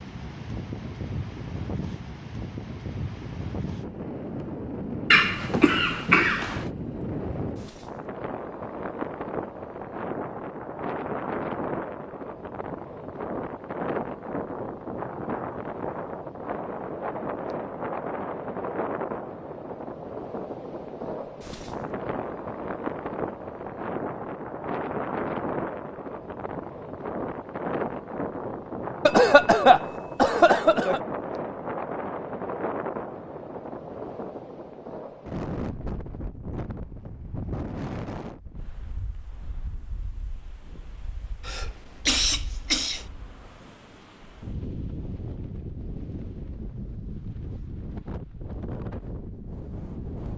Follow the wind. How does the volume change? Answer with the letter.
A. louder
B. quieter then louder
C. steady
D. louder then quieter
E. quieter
E.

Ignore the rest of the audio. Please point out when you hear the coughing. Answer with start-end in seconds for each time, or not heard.
5.1-6.7, 29.1-31.0, 41.5-43.0.